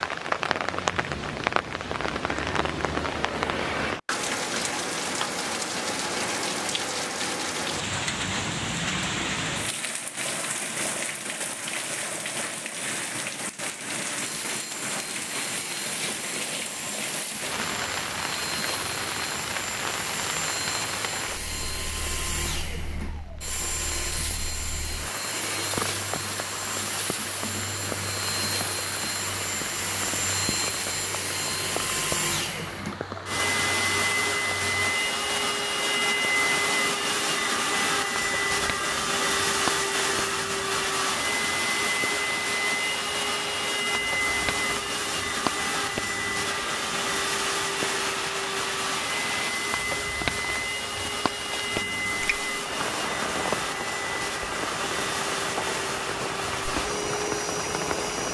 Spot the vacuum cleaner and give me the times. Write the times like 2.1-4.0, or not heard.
14.2-58.2.